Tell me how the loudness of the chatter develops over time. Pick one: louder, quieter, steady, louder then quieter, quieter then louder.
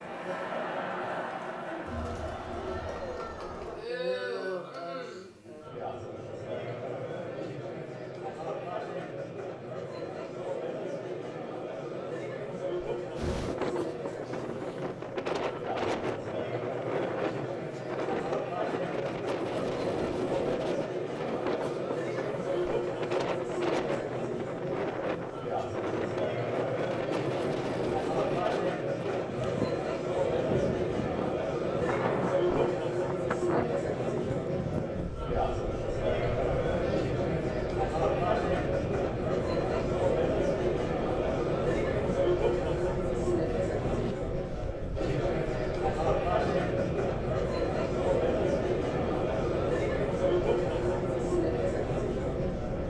louder.